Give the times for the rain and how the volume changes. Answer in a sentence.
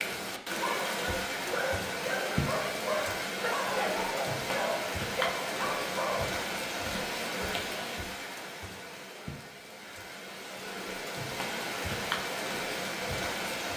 You can hear the rain from 0.0 to 13.7 s, getting quieter then louder.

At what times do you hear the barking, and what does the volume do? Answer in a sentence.
You can hear the barking from 0.6 to 6.2 s, at a steady volume.